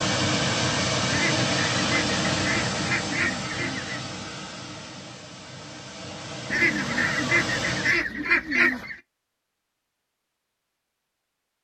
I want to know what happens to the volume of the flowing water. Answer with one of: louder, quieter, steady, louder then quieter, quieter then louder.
quieter then louder.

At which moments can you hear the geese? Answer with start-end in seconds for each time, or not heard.
1.1-4.0, 6.5-8.9.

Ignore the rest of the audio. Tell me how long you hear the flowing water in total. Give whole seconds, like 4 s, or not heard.
8 s.